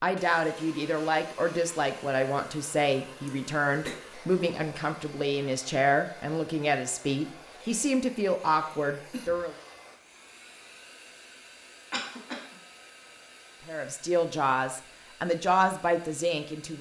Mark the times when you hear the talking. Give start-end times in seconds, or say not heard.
0.0-9.6, 13.7-16.7.